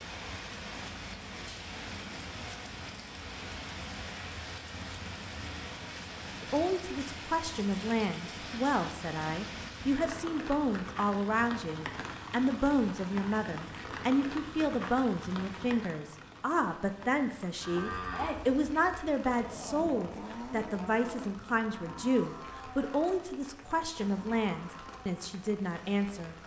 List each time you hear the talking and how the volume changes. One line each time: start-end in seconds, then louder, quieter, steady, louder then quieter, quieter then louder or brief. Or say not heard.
6.4-26.4 steady.